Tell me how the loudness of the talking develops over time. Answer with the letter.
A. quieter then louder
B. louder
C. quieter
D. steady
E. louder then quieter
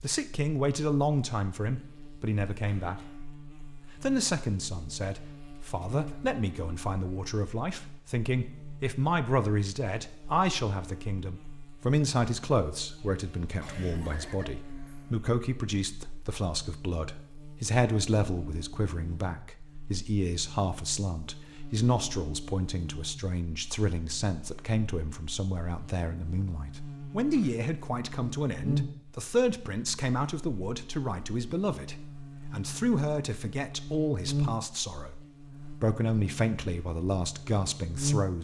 D.